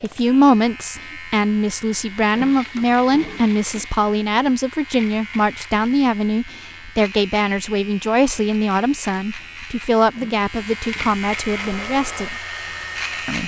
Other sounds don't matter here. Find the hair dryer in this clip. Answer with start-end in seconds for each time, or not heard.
11.3-13.4.